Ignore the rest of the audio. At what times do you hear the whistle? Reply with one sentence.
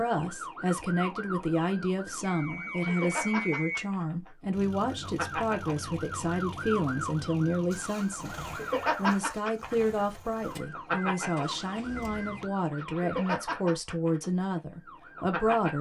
You can hear the whistle from 2.2 to 3.9 s.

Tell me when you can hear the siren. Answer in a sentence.
You can hear the siren from 0.0 to 15.7 s.